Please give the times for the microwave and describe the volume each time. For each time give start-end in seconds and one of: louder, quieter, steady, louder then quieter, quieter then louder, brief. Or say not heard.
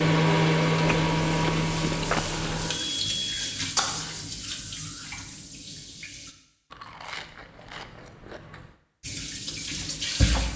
0.0-4.2 quieter.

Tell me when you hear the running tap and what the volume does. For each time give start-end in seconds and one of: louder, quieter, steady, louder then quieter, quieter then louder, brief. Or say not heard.
0.0-6.3 louder then quieter
9.0-10.5 brief.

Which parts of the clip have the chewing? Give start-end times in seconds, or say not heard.
0.8-2.7, 6.7-8.8.